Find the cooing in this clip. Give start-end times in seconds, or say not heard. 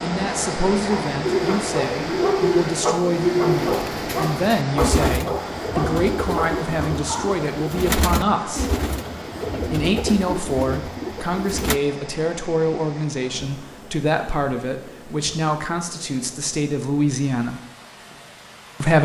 1.2-11.8.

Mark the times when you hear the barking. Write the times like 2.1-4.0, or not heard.
0.8-7.3.